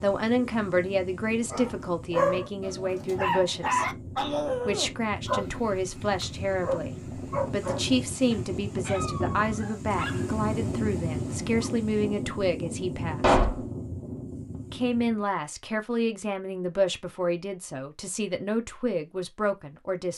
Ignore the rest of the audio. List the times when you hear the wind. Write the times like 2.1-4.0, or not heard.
0.0-15.2.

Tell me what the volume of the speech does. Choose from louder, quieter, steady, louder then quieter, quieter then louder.
steady.